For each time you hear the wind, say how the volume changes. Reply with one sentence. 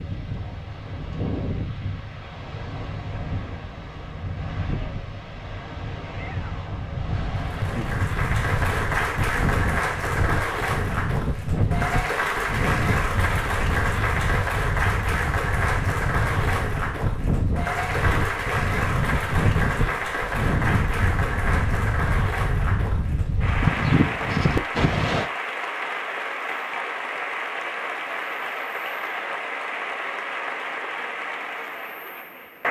You can hear the wind from 0.0 to 25.3 s, getting louder.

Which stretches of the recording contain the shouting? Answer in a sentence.
You can hear the shouting from 6.0 to 6.8 s.